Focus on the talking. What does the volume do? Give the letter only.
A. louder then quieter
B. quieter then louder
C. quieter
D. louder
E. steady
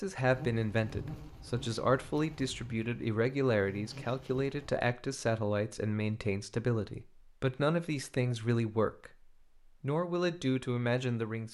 E.